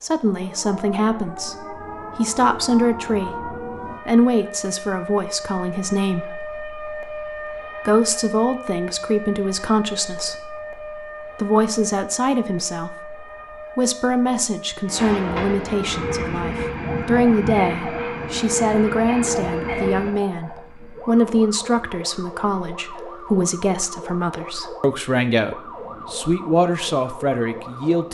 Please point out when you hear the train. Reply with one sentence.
You can hear the train from 14.8 to 28.0 s.